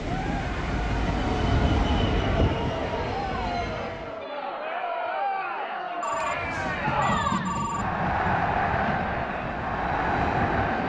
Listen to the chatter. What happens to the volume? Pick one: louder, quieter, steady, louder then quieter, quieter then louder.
louder.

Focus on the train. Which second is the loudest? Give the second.
2 s.